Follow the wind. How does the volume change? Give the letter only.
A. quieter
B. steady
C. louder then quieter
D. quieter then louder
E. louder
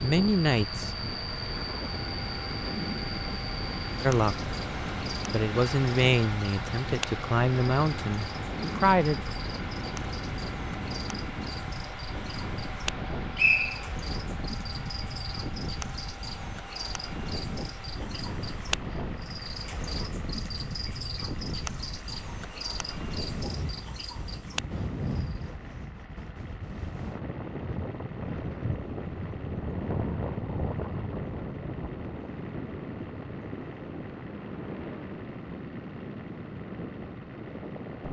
B.